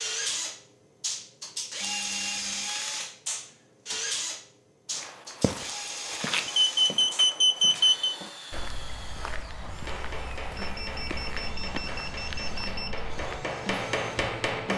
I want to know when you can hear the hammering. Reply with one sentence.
You can hear the hammering from 9.8 to 14.7 s.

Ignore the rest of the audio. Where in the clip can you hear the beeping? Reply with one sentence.
The beeping can be heard from 1.8 to 2.7 s, from 6.5 to 8.2 s and from 10.6 to 13.0 s.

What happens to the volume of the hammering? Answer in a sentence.
The volume of the hammering goes up.